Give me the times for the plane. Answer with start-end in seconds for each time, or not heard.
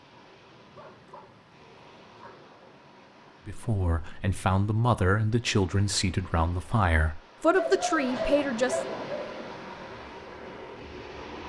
9.1-11.4.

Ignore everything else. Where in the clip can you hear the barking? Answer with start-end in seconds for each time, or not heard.
0.8-2.4, 7.5-9.4.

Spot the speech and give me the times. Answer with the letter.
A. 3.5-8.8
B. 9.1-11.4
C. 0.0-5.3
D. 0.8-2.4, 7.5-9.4
A.